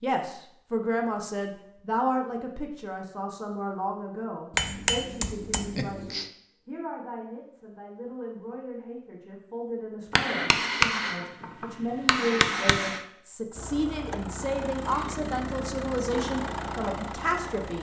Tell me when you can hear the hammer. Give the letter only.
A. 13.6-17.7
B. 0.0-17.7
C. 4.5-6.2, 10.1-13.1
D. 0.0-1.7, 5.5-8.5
C.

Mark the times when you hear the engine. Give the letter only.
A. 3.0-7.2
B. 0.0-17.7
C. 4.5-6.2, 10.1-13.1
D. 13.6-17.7
D.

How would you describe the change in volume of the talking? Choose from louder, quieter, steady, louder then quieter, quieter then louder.
quieter then louder.